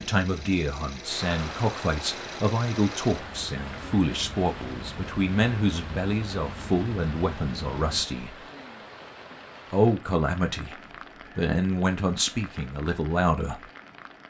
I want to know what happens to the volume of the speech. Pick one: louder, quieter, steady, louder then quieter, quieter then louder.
steady.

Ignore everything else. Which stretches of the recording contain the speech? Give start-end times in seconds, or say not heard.
0.0-8.4, 9.7-13.7.